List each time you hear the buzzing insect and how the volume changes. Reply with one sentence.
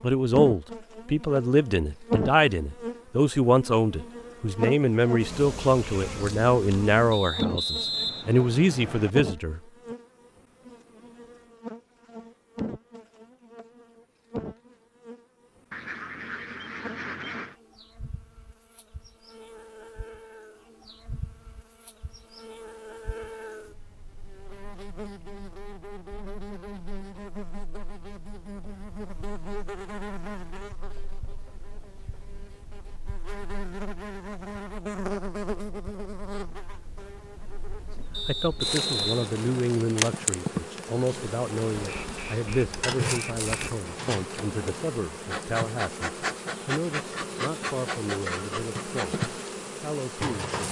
The buzzing insect can be heard from 0.0 to 50.6 s, getting quieter then louder.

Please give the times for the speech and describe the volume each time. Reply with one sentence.
The speech can be heard from 0.0 to 9.6 s, at a steady volume; and from 38.2 to 50.5 s, getting quieter.